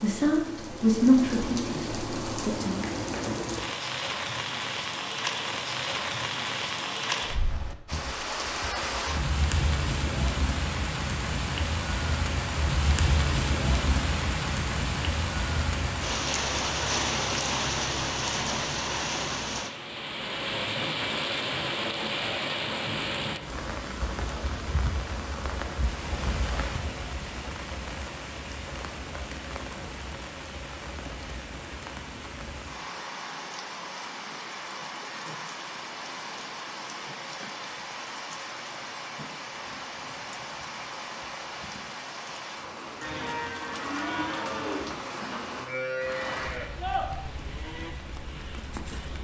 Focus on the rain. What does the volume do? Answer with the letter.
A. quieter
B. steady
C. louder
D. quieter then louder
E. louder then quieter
A.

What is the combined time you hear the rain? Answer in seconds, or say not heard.
49 s.